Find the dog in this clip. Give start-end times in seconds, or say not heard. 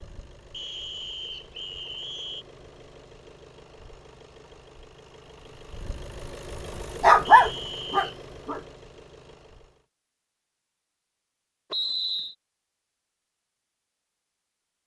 7.0-8.6.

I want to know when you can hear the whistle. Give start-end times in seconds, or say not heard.
0.5-2.5, 7.2-8.2, 11.7-12.3.